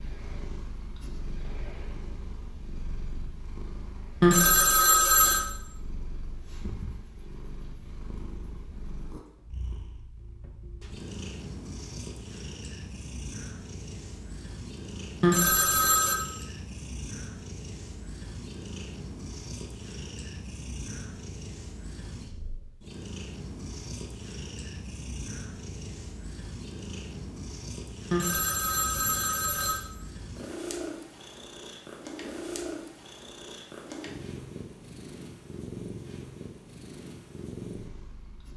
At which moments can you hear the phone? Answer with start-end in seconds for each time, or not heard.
4.2-5.5, 15.2-16.2, 28.1-29.8.